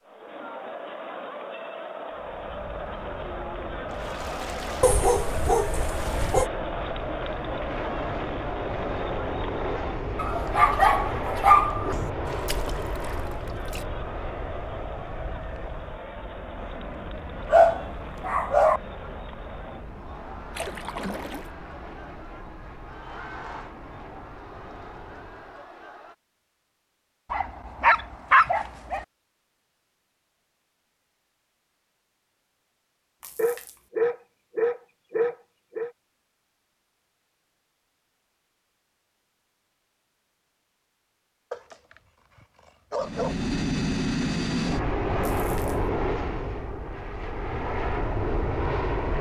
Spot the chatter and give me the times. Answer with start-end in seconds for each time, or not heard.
0.0-26.1.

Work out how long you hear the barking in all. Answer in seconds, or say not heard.
11 s.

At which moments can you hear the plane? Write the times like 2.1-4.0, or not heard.
2.1-25.7, 43.0-49.1.